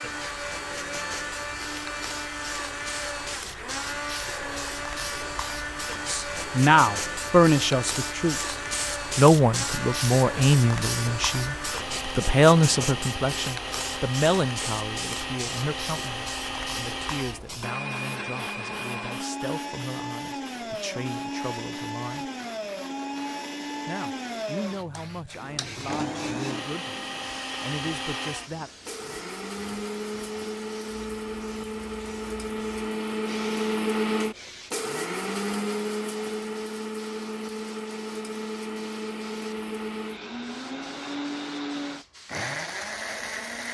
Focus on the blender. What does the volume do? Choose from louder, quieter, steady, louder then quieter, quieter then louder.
steady.